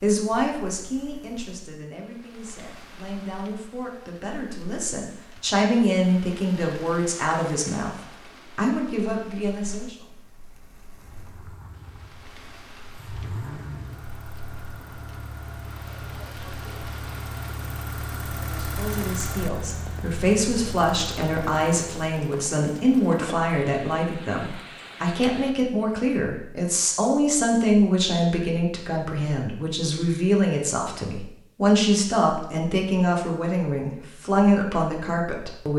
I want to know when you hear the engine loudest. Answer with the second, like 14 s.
19 s.